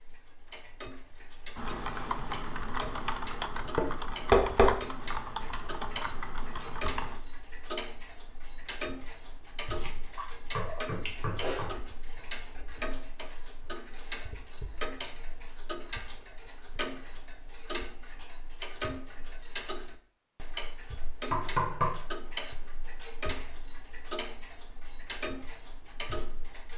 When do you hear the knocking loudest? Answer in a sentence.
The loudest moment of the knocking is at 4 seconds.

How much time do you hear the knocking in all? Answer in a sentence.
The knocking can be heard for 3 seconds in total.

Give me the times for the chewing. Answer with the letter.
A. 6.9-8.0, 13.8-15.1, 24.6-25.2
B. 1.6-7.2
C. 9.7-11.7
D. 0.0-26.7
C.